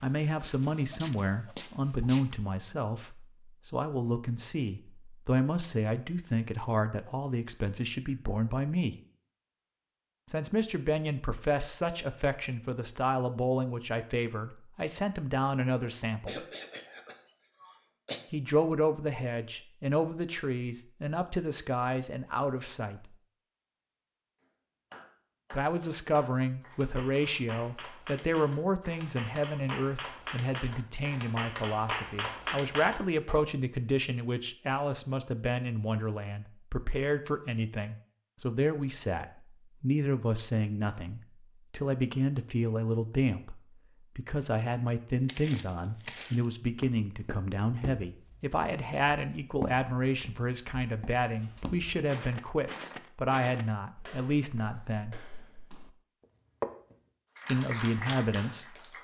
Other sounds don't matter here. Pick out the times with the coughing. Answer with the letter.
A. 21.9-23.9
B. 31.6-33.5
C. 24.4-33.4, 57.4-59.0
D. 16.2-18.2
D.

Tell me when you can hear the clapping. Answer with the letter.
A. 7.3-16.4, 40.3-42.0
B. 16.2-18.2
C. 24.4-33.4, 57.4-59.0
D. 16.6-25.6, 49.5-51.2
C.